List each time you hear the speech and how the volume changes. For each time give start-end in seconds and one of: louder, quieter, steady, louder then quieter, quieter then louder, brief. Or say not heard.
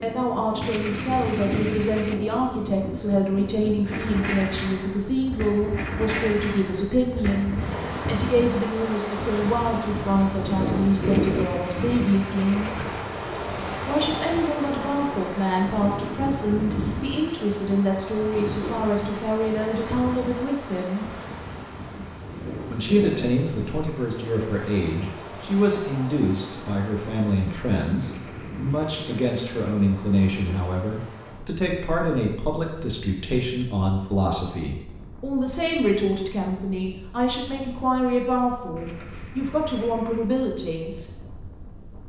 0.0-12.8 steady
13.8-21.1 steady
22.6-41.1 steady.